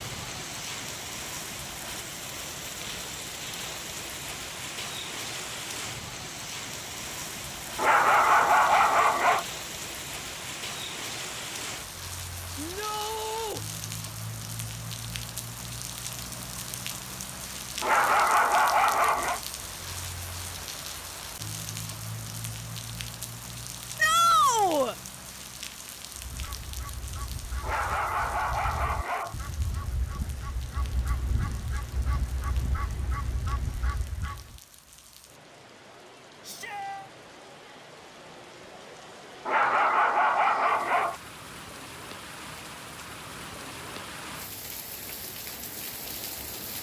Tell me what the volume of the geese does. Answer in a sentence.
The loudness of the geese goes up.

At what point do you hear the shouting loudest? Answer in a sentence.
The loudest moment of the shouting is at 24 seconds.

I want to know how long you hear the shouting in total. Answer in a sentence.
You can hear the shouting for 3 seconds altogether.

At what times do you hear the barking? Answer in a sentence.
You can hear the barking from 7.8 to 9.4 s, from 17.8 to 19.4 s, from 27.6 to 29.4 s and from 39.5 to 41.1 s.